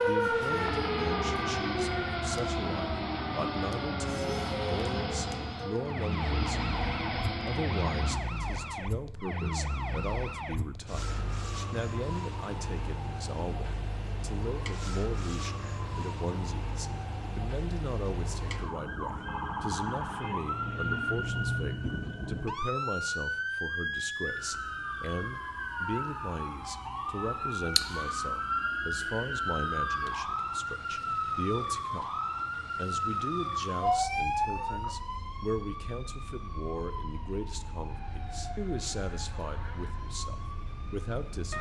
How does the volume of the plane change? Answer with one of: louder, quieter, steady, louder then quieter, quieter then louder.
steady.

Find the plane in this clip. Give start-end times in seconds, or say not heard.
0.1-8.2.